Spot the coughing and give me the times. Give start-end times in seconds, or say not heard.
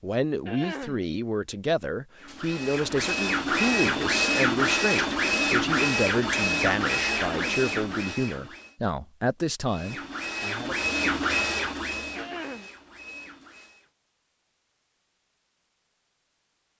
0.5-1.1, 7.1-7.7, 12.2-12.7.